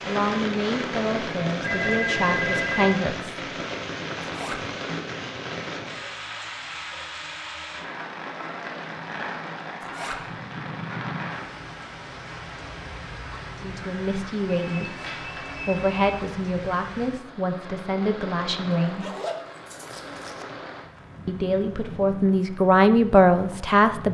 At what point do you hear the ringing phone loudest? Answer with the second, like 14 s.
2 s.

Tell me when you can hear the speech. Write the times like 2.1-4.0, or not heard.
0.0-3.4, 13.6-19.1, 21.2-24.0.